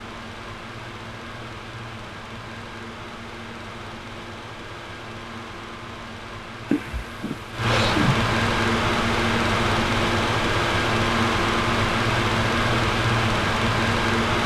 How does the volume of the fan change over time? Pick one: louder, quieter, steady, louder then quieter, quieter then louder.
louder.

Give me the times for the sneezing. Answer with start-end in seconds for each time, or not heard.
6.7-8.2.